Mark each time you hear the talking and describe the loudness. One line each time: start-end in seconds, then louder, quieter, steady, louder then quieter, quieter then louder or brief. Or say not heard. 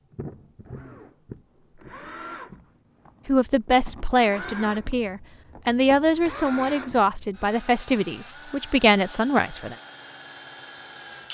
3.2-9.8 steady.